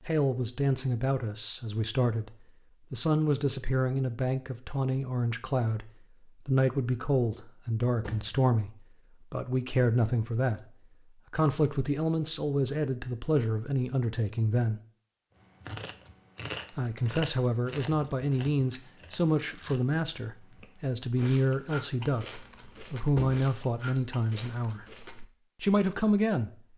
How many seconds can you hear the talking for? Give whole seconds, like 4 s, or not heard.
23 s.